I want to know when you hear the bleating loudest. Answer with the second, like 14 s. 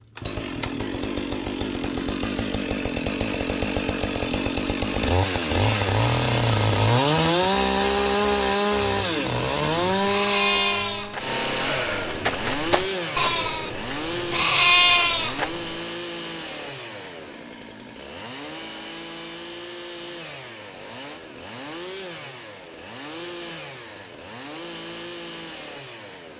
15 s.